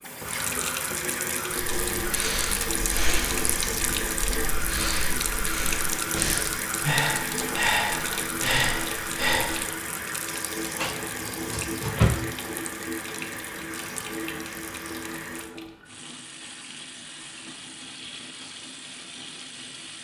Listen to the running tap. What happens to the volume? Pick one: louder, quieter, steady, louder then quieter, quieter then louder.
quieter.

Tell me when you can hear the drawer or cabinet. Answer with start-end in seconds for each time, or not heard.
10.7-12.2.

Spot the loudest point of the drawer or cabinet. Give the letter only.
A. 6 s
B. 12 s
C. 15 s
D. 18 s
B.